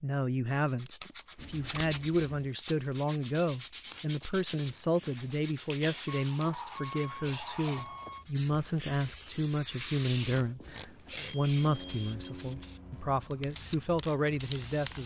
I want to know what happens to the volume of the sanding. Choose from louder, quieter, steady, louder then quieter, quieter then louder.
quieter.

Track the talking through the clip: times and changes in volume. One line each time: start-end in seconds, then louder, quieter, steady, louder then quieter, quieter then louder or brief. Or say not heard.
0.0-15.0 steady.